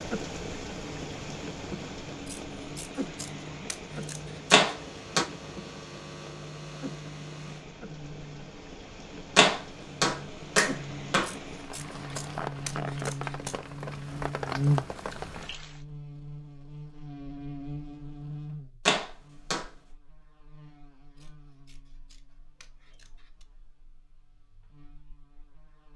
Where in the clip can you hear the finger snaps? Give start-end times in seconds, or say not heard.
4.5-5.2, 9.3-11.3, 18.9-19.6.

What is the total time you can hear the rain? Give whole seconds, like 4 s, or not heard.
16 s.